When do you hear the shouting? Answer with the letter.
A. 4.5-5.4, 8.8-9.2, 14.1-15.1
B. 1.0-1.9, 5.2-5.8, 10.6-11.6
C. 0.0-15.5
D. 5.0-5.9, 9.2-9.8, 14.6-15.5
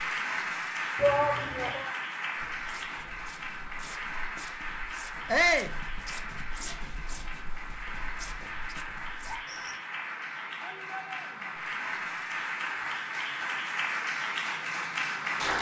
B.